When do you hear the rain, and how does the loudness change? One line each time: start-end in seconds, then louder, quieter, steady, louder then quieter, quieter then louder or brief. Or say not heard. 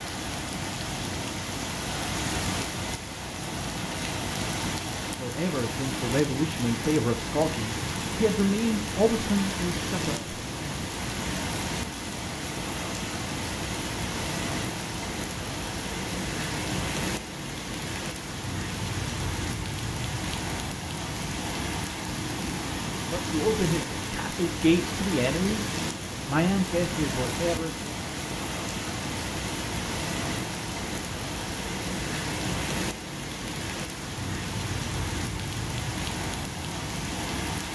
0.0-37.7 steady.